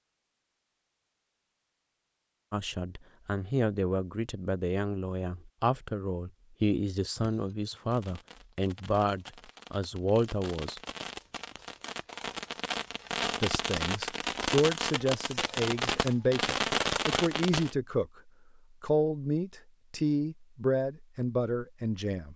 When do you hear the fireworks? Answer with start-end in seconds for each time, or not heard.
7.2-17.8.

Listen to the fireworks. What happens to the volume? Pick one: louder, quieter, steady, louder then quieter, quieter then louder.
louder.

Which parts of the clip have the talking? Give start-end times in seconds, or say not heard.
2.5-10.8, 13.4-18.1, 18.8-22.3.